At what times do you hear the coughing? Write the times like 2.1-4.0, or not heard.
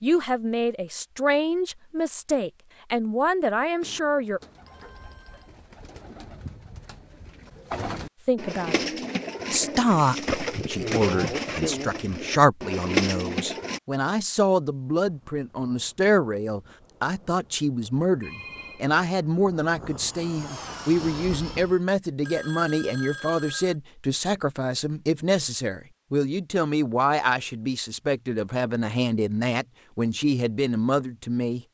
not heard.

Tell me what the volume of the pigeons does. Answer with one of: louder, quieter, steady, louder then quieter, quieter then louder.
louder.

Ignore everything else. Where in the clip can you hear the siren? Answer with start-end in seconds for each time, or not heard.
not heard.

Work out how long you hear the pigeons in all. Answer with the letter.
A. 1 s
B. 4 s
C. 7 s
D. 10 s
D.